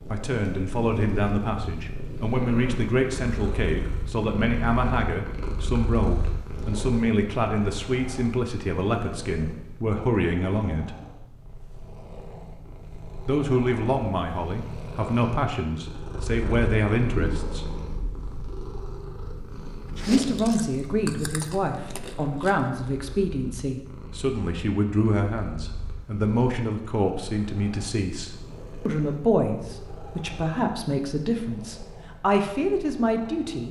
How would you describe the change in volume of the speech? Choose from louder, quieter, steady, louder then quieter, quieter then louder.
steady.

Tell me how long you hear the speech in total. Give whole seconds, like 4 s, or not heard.
29 s.